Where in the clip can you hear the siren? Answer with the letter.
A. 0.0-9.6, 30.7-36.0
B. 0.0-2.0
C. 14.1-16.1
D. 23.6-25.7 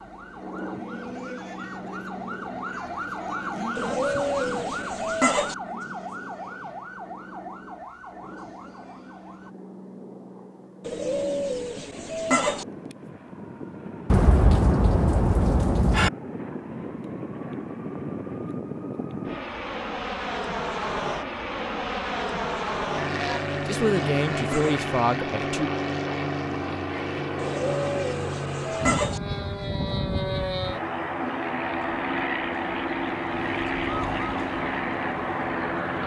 A.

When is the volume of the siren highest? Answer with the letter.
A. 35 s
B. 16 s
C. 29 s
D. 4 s
D.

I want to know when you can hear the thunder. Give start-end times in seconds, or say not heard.
14.1-16.1.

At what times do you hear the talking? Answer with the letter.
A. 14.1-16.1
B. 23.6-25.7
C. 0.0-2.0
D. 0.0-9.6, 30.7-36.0
B.